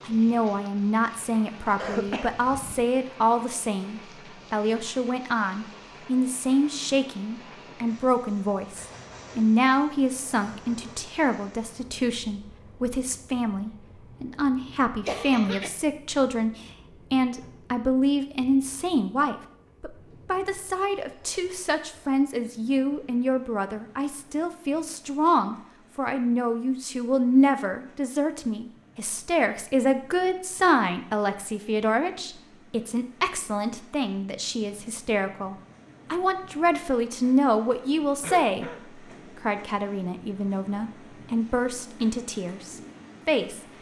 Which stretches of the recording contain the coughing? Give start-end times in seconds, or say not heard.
1.8-2.9, 15.1-15.7, 38.2-38.9.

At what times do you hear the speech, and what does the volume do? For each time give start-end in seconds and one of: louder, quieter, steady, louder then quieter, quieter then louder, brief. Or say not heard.
0.0-43.6 steady.